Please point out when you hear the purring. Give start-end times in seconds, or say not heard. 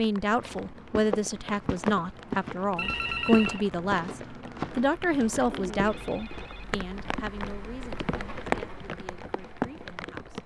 not heard.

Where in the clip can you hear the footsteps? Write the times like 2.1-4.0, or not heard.
0.3-6.5.